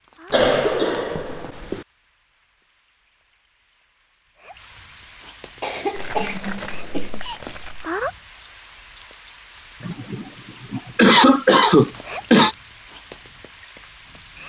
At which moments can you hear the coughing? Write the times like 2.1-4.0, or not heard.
0.3-1.9, 5.6-7.2, 9.8-12.6.